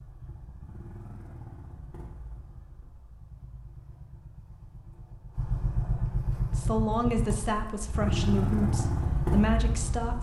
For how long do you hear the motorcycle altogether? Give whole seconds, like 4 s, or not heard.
10 s.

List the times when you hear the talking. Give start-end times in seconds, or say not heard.
6.5-10.1.